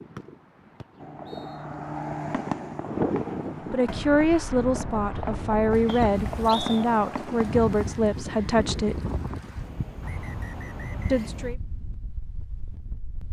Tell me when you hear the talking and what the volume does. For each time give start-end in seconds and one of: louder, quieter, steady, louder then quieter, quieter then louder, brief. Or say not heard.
3.7-9.0 steady
11.1-11.6 brief.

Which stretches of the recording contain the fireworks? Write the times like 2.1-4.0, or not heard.
0.6-8.0.